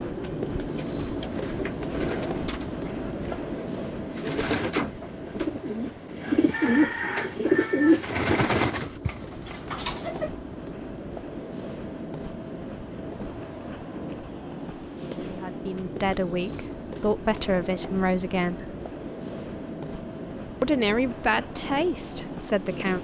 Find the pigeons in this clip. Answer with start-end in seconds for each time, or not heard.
0.6-10.3.